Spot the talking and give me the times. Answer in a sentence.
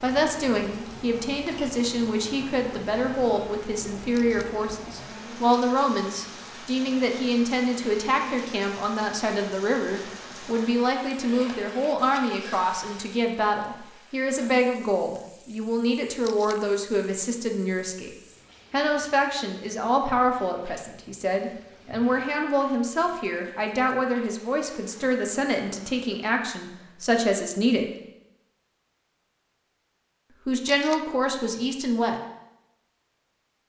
You can hear the talking from 0.0 to 18.1 s, from 18.7 to 27.9 s and from 30.4 to 32.2 s.